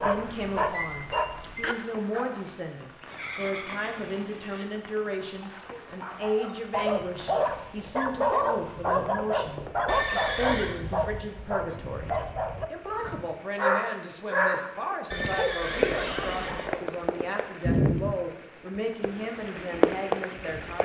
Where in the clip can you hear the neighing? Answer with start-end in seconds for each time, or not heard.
3.0-4.7, 9.8-10.8, 15.1-16.8.